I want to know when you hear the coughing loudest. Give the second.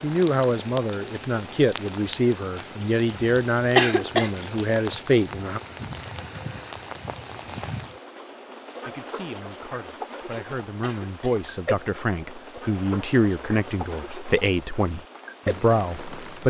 4 s.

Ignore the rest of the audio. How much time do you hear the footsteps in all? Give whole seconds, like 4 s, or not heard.
not heard.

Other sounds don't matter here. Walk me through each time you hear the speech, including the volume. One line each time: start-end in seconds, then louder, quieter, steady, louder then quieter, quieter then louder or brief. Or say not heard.
0.0-5.6 steady
8.8-16.4 louder.